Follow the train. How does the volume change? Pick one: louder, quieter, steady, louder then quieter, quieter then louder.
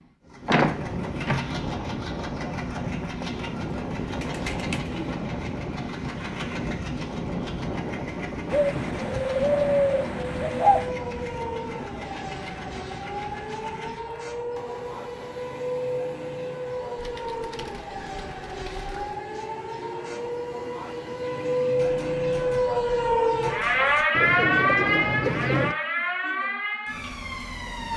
quieter.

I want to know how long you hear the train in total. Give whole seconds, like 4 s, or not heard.
24 s.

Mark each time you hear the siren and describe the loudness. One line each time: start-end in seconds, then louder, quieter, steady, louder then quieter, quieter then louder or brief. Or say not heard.
10.3-27.9 louder.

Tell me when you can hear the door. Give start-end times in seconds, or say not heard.
0.5-1.5.